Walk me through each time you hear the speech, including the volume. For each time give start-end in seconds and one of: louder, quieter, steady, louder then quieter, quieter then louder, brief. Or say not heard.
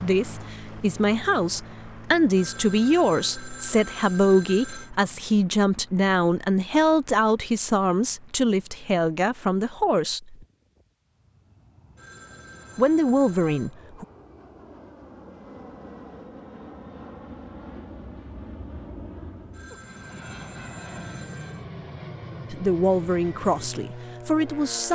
0.0-10.3 steady
12.8-14.1 brief
22.5-24.9 brief.